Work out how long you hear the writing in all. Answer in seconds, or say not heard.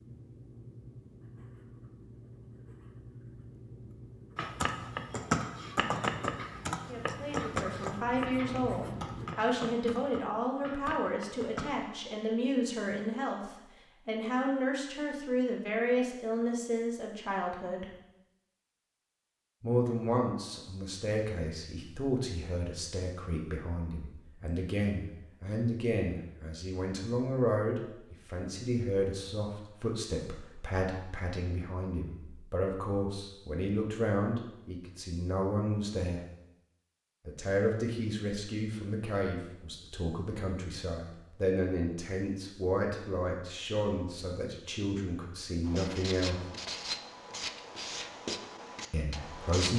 13 s.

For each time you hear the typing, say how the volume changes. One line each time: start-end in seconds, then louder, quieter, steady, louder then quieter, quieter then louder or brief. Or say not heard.
4.3-11.8 quieter.